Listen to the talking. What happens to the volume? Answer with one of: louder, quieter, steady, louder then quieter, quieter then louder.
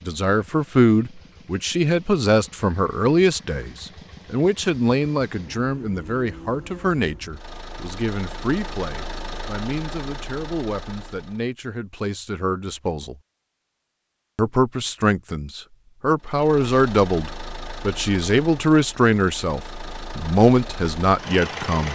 quieter then louder.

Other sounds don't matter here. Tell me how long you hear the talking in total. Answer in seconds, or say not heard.
21 s.